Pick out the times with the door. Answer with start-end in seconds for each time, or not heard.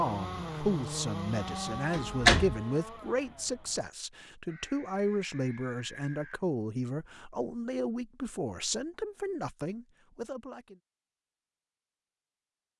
1.6-2.6.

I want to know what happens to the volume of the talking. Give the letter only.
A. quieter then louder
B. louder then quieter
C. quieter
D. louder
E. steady
E.